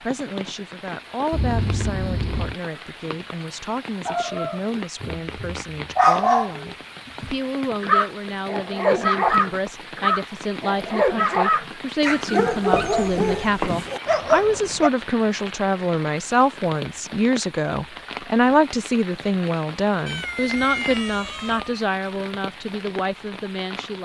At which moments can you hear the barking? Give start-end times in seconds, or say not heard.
4.0-14.9.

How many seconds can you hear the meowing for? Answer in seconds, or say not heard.
4 s.